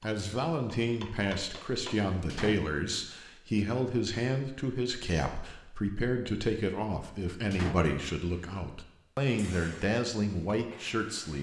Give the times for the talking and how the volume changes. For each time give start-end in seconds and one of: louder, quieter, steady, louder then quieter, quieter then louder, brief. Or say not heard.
0.0-11.3 steady.